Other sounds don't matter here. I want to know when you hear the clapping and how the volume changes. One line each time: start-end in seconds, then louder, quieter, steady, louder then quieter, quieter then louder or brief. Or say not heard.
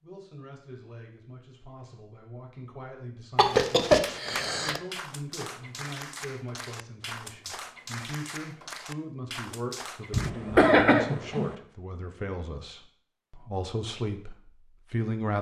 4.0-10.3 steady.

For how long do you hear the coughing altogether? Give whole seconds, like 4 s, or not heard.
3 s.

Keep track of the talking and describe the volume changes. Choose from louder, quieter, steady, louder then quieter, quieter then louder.
louder.